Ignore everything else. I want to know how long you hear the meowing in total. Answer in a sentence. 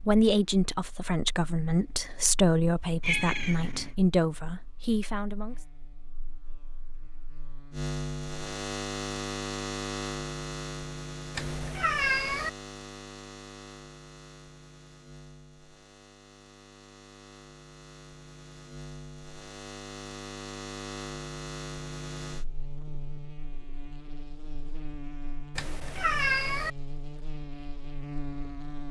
You can hear the meowing for 3 seconds altogether.